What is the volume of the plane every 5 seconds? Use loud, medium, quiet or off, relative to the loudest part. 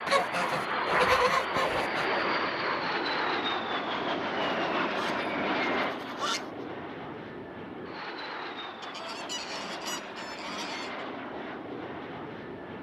loud, medium, medium.